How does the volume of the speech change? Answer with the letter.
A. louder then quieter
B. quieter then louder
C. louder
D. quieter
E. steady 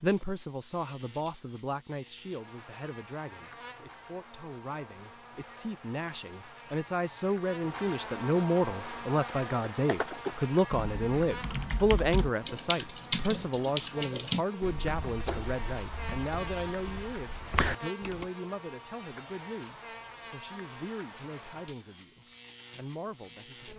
A.